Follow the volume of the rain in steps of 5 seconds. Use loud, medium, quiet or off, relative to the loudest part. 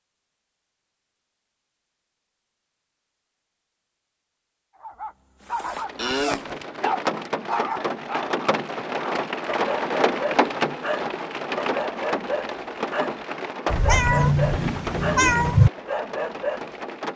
off, loud, loud, medium.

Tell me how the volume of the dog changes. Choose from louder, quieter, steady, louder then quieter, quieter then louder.
steady.